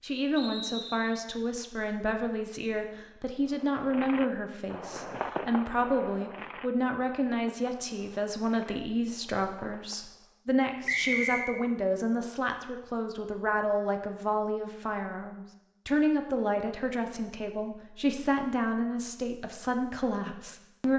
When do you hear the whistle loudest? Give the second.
11 s.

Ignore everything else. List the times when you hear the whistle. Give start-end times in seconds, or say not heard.
0.3-1.2, 10.8-11.4.